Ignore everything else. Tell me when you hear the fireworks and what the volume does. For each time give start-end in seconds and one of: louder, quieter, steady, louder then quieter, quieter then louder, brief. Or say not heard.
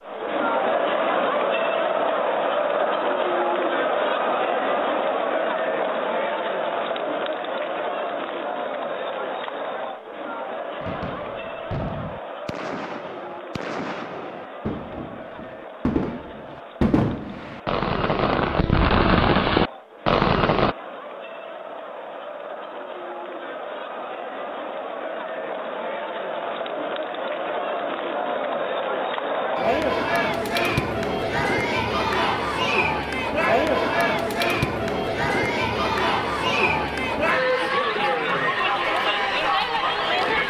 10.8-20.8 louder.